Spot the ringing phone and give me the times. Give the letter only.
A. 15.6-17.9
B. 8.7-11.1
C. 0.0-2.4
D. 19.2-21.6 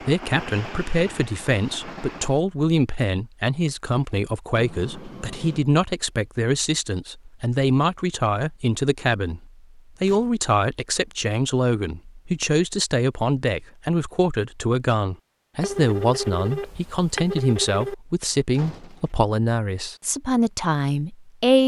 A.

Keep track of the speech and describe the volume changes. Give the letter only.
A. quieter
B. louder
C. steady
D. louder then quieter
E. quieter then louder
C.